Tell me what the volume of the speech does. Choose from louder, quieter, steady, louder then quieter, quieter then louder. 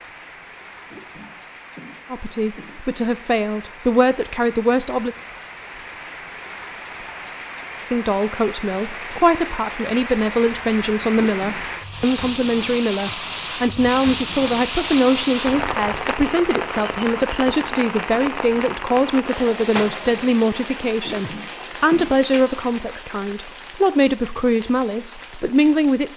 steady.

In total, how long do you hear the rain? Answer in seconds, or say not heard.
26 s.